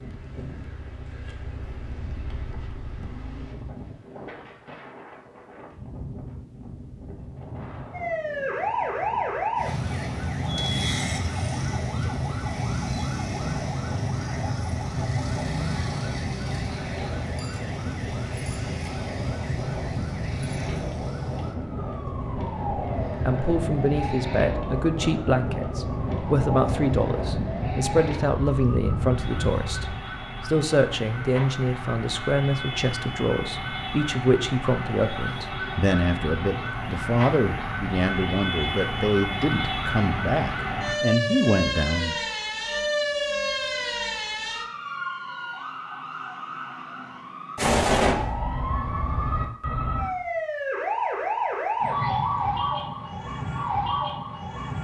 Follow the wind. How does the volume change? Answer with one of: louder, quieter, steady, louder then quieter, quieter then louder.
louder.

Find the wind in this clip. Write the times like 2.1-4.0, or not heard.
0.0-30.1.